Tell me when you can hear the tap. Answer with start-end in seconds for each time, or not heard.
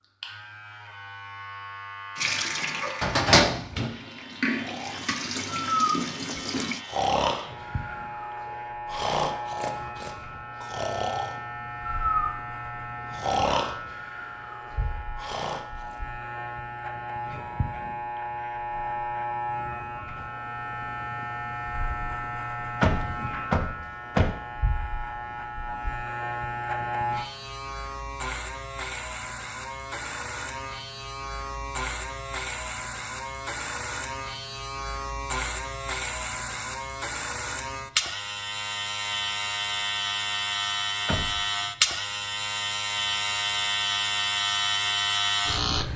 2.1-6.8.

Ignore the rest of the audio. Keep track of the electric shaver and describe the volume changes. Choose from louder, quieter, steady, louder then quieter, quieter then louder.
louder.